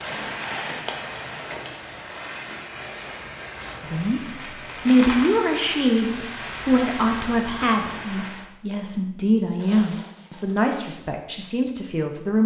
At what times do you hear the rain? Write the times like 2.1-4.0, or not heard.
0.0-8.5.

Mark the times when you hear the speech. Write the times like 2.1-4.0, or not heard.
3.8-4.2, 4.8-12.4.